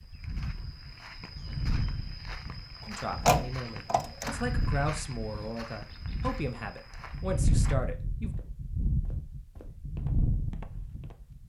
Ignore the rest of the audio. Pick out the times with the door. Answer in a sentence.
The door can be heard from 3.2 to 4.3 s.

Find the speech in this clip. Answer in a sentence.
The speech can be heard from 2.9 to 8.3 s.